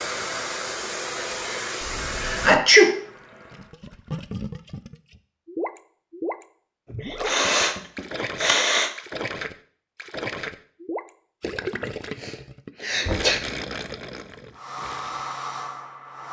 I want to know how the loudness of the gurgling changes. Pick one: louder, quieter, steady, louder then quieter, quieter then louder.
steady.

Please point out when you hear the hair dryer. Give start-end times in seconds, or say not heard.
0.0-3.8, 14.6-16.2.